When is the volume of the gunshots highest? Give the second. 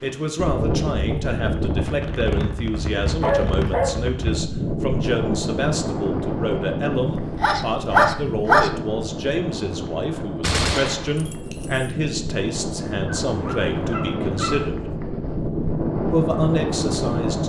11 s.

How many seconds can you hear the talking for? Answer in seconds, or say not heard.
16 s.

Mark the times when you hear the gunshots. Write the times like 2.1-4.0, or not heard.
10.4-11.9.